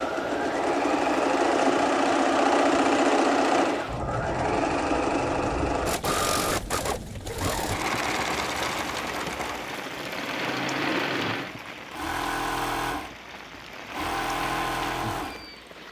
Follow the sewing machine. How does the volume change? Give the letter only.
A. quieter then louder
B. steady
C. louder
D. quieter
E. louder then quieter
D.